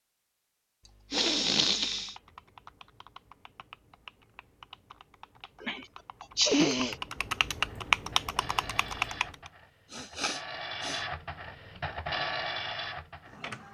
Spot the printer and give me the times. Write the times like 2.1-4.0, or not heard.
7.6-13.7.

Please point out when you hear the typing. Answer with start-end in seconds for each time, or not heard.
1.9-9.5.